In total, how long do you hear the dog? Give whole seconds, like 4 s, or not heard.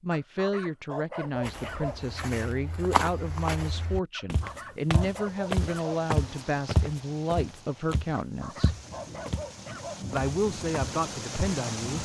6 s.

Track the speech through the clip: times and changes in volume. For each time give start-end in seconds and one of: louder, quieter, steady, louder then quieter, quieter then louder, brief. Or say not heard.
0.0-8.8 steady
10.1-11.9 brief.